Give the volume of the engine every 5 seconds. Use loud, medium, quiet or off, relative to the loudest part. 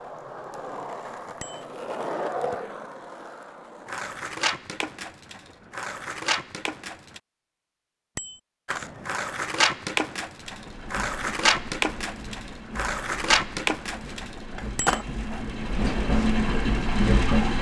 off, off, quiet, loud.